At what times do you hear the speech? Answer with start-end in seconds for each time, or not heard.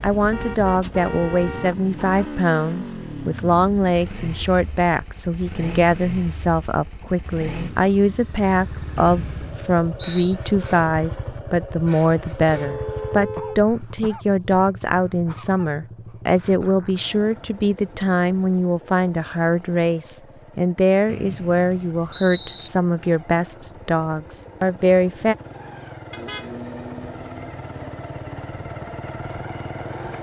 0.0-25.4.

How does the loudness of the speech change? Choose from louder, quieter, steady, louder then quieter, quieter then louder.
steady.